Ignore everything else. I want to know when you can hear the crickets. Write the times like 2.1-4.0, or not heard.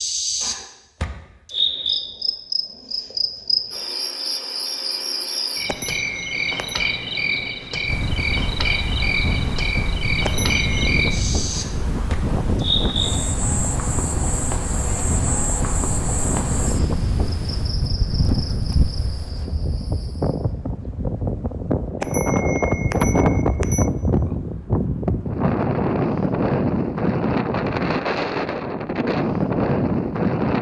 0.0-20.5.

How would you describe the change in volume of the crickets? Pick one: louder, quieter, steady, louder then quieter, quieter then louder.
quieter.